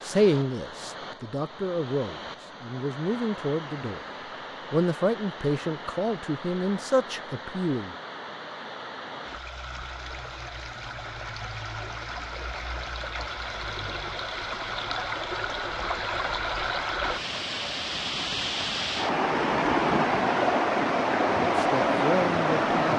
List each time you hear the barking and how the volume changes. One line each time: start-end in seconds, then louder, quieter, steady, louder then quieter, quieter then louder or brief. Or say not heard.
not heard.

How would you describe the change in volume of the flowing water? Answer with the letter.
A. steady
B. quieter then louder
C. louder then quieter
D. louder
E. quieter
D.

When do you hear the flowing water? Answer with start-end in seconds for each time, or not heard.
0.0-22.9.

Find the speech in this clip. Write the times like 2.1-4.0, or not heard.
0.0-4.0, 4.7-7.9, 21.4-22.9.